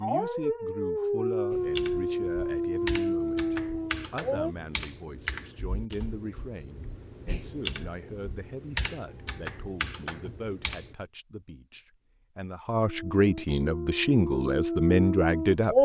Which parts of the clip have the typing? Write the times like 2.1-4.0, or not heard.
1.5-10.9.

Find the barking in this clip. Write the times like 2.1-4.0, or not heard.
0.0-4.5, 12.8-15.7.